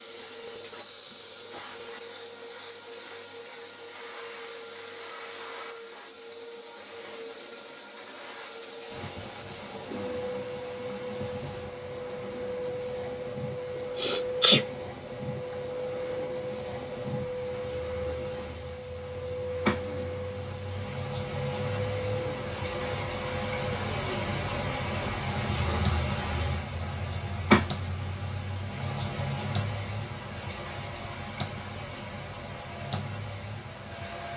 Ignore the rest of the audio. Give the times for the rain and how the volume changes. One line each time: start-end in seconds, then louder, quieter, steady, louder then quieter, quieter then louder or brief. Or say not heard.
8.8-34.3 louder then quieter.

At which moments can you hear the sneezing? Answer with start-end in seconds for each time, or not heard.
13.7-14.6, 25.5-25.9.